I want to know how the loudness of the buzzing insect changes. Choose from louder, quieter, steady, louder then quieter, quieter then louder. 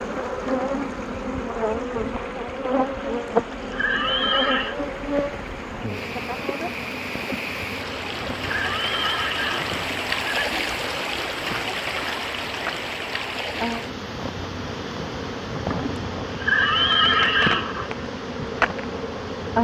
quieter then louder.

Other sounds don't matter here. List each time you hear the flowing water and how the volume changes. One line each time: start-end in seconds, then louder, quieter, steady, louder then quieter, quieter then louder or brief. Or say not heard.
0.0-19.5 louder then quieter.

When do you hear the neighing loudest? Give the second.
17 s.